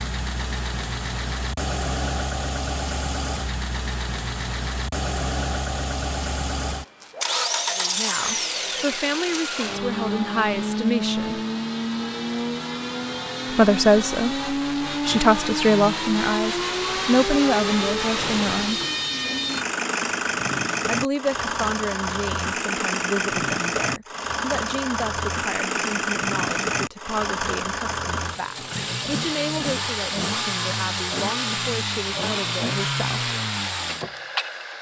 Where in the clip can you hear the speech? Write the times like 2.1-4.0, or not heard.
7.8-11.4, 13.5-18.8, 20.9-33.4.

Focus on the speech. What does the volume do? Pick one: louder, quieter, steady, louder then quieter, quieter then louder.
quieter.